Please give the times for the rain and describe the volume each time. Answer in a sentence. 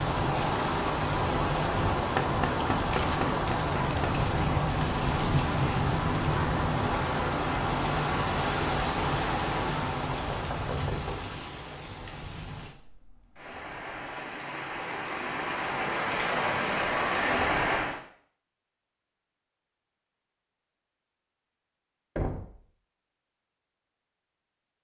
The rain can be heard from 0.0 to 18.0 s, getting quieter then louder.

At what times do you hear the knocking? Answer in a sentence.
You can hear the knocking from 2.1 to 4.2 s, from 10.0 to 11.3 s and from 22.1 to 22.6 s.